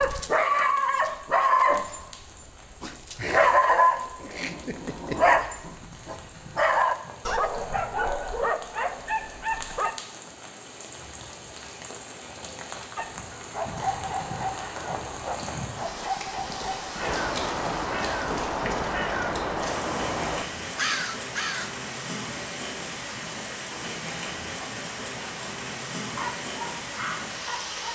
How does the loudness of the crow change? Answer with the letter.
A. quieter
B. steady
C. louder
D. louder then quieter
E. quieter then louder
C.